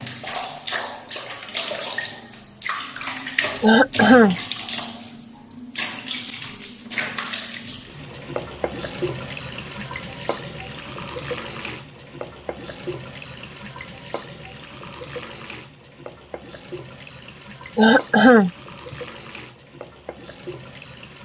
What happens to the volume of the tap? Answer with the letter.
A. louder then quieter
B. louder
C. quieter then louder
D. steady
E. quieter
E.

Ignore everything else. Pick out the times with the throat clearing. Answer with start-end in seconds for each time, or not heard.
3.6-4.3, 17.8-18.9.